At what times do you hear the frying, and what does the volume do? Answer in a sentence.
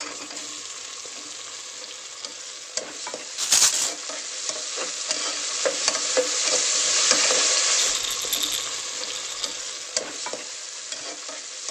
You can hear the frying from 0.0 to 11.6 s, getting louder then quieter.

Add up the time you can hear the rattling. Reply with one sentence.
The rattling can be heard for 2 seconds in total.